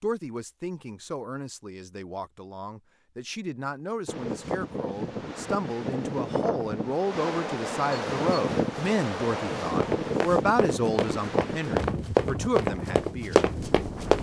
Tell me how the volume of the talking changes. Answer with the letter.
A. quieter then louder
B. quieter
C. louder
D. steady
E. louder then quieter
C.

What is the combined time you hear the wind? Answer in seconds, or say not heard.
10 s.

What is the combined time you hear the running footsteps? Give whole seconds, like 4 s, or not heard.
4 s.